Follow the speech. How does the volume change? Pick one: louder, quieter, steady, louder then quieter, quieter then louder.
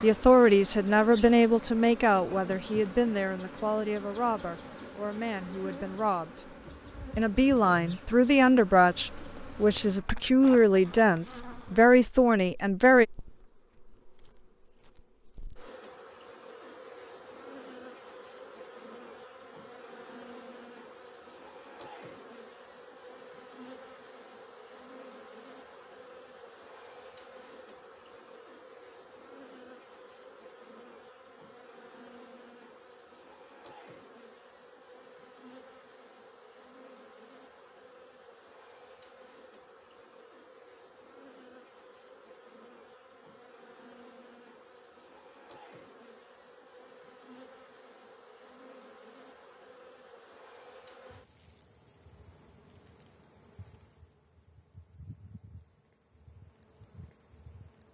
quieter then louder.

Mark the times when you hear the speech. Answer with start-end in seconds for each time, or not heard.
0.0-6.5, 7.2-13.1.